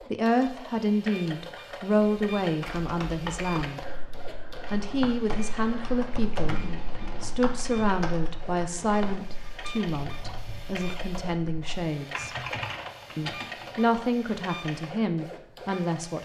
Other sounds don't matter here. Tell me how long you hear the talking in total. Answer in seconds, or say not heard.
14 s.